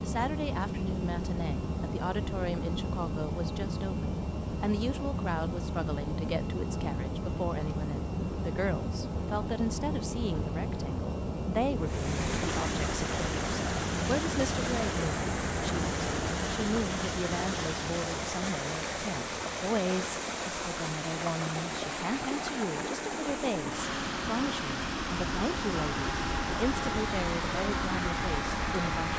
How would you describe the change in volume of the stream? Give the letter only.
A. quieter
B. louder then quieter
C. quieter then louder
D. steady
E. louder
D.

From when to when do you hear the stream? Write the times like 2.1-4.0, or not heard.
11.8-29.1.